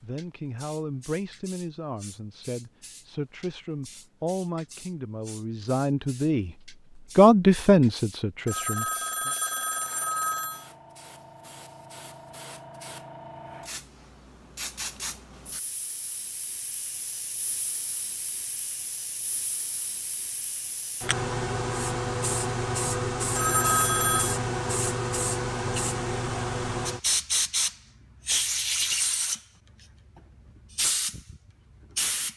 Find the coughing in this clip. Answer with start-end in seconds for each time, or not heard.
not heard.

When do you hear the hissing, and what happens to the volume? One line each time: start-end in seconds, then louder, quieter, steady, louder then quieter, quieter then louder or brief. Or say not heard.
0.0-32.3 louder.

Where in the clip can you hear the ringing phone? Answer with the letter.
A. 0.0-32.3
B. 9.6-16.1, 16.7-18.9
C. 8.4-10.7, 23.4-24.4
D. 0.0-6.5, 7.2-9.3
C.